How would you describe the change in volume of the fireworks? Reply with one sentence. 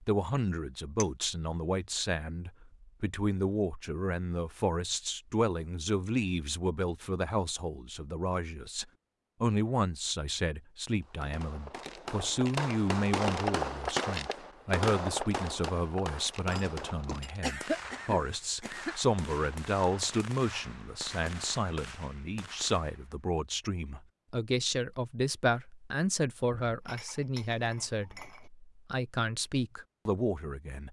The loudness of the fireworks goes down.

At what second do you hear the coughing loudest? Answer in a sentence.
The volume of the coughing peaks at 18 seconds.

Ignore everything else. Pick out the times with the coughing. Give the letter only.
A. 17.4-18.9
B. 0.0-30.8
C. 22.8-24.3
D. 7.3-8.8
A.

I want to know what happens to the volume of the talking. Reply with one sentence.
The volume of the talking stays about the same.